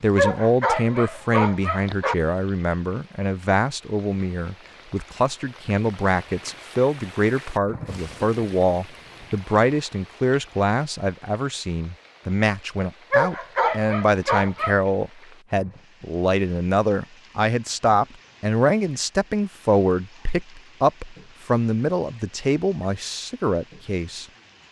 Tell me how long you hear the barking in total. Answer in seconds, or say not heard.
4 s.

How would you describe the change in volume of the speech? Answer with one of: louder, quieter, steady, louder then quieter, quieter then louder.
steady.